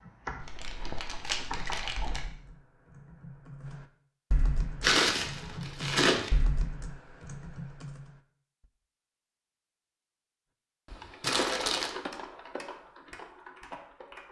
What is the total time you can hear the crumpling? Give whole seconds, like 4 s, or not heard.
4 s.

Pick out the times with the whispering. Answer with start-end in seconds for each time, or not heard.
not heard.